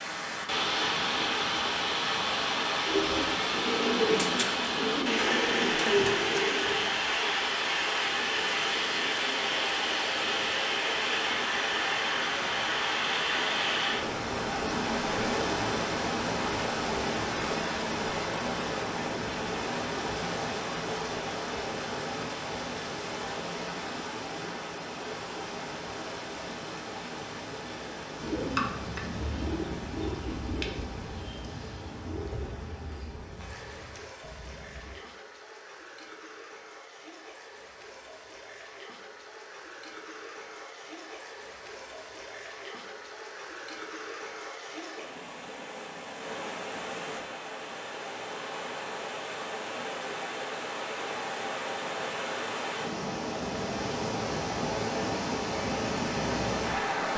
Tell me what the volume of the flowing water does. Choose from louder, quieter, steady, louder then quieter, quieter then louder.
quieter then louder.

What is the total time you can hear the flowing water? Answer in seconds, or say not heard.
57 s.